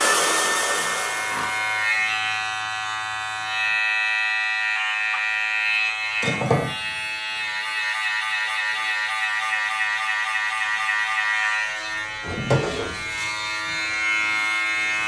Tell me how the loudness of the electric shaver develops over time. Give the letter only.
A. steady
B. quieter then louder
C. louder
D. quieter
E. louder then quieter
A.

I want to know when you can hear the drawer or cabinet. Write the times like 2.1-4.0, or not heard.
12.2-13.1.